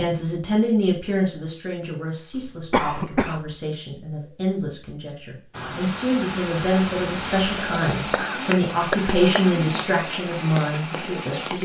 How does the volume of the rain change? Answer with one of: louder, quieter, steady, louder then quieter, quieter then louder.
steady.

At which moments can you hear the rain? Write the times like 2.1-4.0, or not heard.
5.5-11.6.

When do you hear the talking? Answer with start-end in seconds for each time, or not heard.
0.0-11.6.